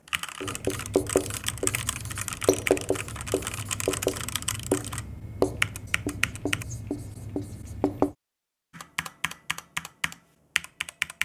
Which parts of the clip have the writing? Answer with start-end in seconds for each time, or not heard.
0.4-8.2.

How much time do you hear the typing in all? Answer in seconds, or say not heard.
9 s.